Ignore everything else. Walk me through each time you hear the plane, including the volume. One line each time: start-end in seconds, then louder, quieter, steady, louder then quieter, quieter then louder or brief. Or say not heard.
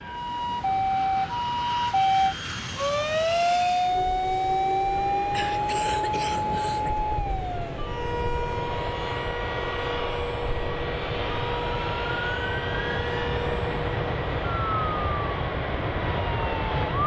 0.0-17.0 louder.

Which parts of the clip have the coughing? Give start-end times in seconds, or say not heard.
5.3-7.0.